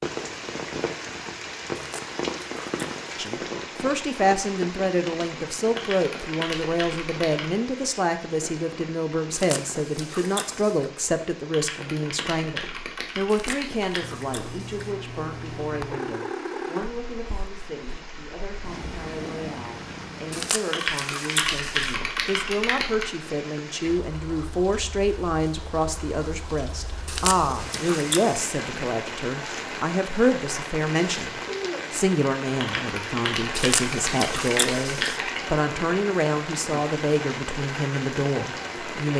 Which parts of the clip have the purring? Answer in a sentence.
You can hear the purring from 14.0 to 20.5 s.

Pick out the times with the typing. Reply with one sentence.
The typing can be heard from 5.8 to 7.6 s, from 11.5 to 14.1 s, from 20.7 to 23.1 s and from 32.6 to 35.5 s.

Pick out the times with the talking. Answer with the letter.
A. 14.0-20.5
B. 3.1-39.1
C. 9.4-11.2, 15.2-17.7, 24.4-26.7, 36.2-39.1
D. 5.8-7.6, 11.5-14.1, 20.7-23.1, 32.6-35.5
B.